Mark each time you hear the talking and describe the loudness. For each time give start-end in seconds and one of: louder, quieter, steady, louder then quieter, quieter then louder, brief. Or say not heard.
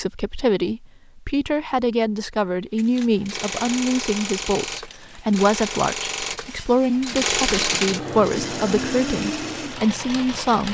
0.0-10.6 steady.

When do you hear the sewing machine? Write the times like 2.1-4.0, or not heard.
2.8-10.6.